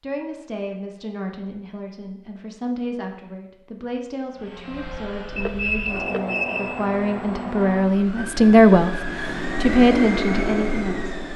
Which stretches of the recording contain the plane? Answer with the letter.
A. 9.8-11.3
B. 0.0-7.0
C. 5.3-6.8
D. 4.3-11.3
D.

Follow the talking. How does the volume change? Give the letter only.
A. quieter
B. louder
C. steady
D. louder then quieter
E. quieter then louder
B.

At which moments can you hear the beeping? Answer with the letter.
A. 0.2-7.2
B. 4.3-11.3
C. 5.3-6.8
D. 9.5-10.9
C.